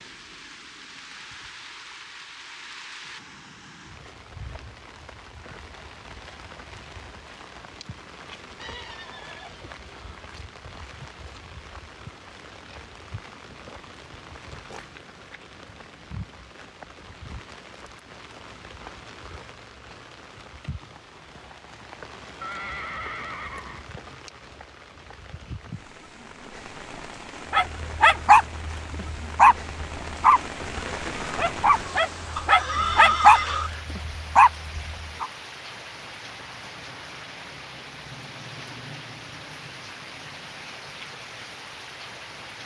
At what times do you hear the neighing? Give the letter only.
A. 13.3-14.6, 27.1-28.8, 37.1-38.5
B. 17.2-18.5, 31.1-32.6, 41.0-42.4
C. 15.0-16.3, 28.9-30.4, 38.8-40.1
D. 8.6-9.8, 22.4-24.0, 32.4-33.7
D.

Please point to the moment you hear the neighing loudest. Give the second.
33 s.